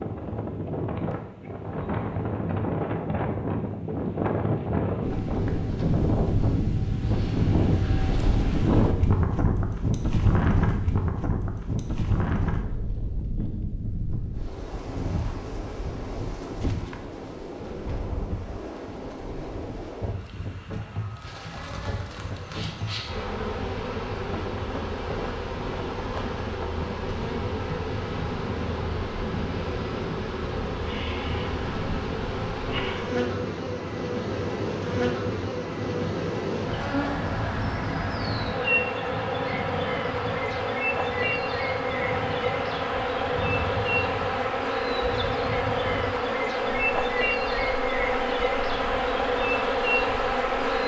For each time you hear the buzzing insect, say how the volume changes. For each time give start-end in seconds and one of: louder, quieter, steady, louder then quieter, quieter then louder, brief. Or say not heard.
21.1-50.8 louder.